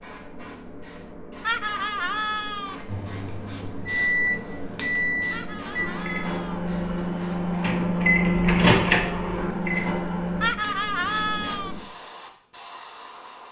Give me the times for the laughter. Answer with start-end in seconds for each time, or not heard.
1.4-2.8, 5.3-6.6, 10.4-11.8.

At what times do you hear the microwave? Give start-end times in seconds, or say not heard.
2.9-10.6.